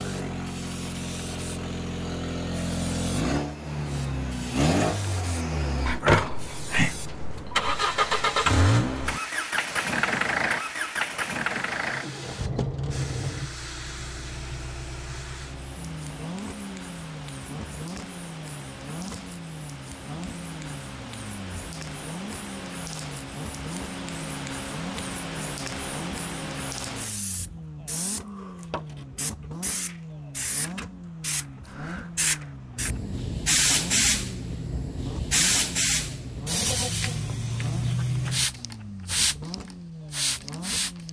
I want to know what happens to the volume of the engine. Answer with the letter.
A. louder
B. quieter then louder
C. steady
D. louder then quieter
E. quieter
E.